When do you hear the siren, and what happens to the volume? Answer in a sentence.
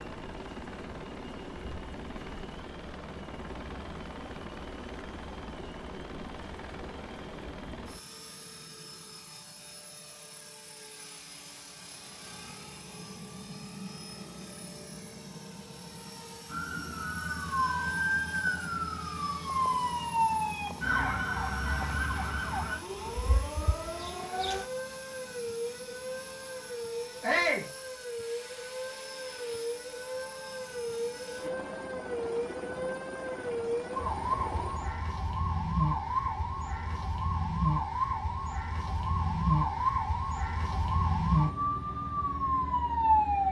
The siren can be heard from 16.4 to 43.4 s, getting quieter then louder.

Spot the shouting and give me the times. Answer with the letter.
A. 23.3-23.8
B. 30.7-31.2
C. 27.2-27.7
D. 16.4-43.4
C.